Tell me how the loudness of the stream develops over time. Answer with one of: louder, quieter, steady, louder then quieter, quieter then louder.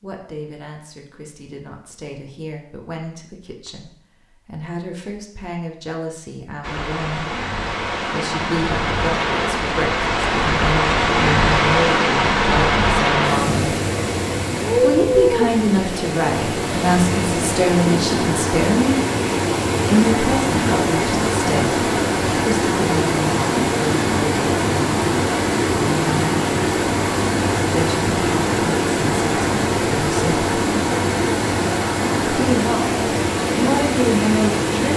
steady.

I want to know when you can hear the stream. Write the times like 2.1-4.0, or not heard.
6.6-34.9.